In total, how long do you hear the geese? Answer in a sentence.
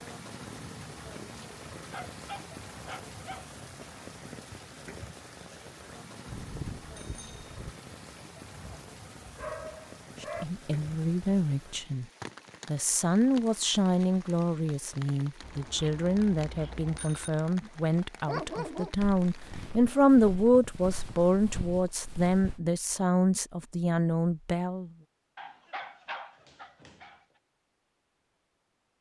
The geese can't be heard in this clip.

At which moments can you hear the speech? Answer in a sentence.
You can hear the speech from 10.2 to 12.1 s and from 12.7 to 24.9 s.